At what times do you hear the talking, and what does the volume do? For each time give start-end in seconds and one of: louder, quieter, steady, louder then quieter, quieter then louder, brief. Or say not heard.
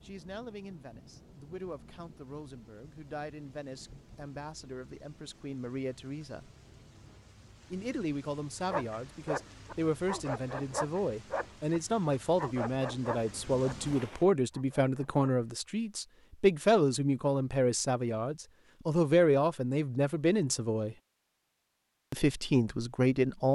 0.0-6.5 louder
7.7-20.9 louder
22.1-23.4 brief.